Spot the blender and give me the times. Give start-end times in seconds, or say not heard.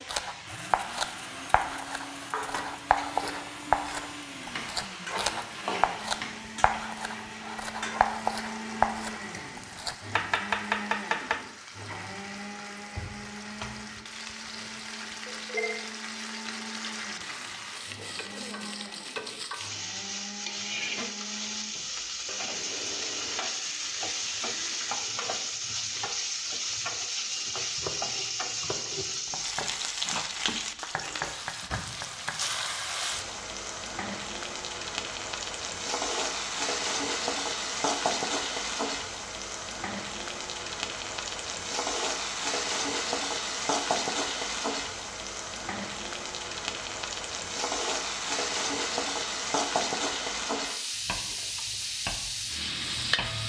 0.0-24.9.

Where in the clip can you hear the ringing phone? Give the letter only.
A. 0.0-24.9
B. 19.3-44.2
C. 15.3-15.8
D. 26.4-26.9
C.